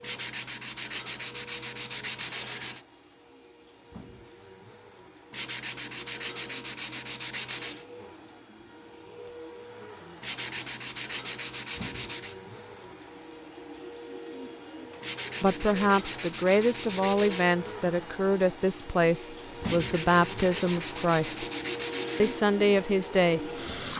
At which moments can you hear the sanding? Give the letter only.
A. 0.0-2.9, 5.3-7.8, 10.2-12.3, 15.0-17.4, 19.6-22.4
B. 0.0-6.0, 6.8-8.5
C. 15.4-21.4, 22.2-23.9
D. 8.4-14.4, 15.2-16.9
A.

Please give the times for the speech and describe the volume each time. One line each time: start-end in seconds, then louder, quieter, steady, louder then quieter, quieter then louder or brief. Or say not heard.
15.4-21.4 steady
22.2-23.9 brief.